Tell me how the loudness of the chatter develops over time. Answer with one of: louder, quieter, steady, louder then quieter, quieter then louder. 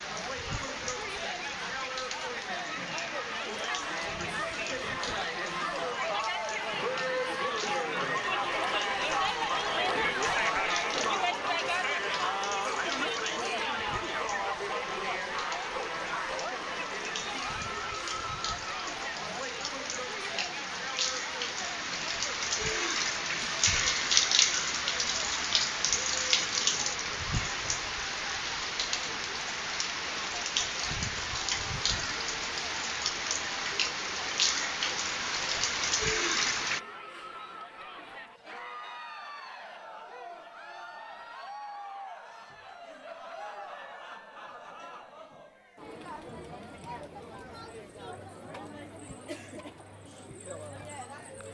quieter.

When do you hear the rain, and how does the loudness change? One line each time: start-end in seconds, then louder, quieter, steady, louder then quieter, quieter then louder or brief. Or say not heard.
0.0-36.8 louder.